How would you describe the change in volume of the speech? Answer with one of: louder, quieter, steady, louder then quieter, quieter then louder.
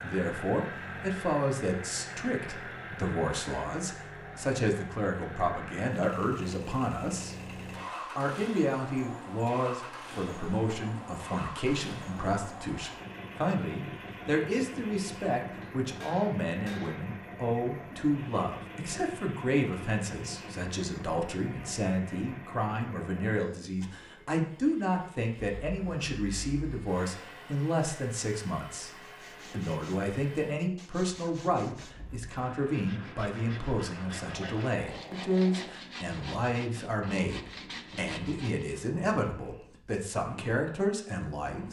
steady.